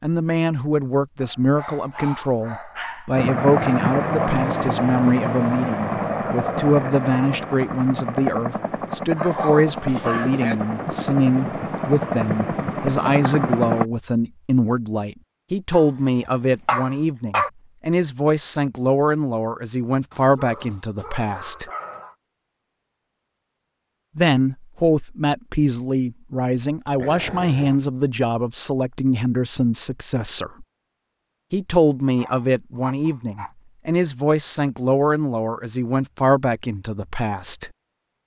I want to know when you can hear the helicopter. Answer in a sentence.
You can hear the helicopter from 3.1 to 13.8 s.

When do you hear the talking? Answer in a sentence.
You can hear the talking from 0.0 to 21.7 s, from 24.1 to 30.6 s and from 31.5 to 37.7 s.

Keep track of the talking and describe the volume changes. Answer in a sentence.
The volume of the talking stays about the same.